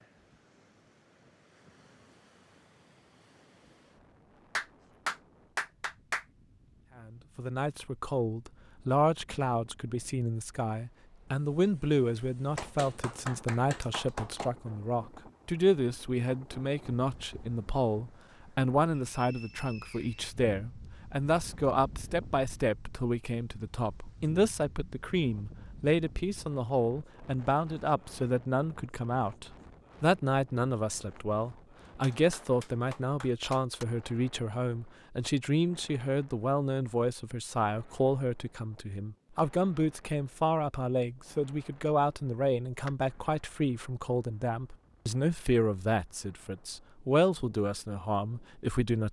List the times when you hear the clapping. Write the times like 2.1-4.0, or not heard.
4.5-6.2, 12.6-14.6, 32.0-33.9.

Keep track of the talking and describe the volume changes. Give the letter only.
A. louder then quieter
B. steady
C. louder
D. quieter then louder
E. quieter
B.